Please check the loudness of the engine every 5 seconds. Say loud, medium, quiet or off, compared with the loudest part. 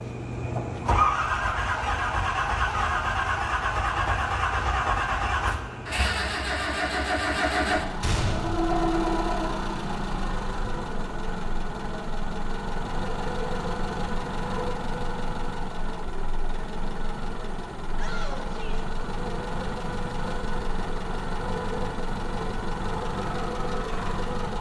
loud, loud, medium, medium, medium.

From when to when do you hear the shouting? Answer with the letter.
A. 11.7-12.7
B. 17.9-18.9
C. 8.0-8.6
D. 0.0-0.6
B.